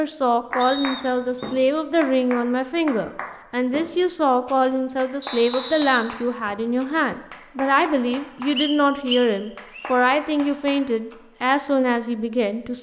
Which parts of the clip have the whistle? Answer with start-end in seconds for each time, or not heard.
0.6-1.6, 5.2-6.7, 8.6-9.9.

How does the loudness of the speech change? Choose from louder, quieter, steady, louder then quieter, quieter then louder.
steady.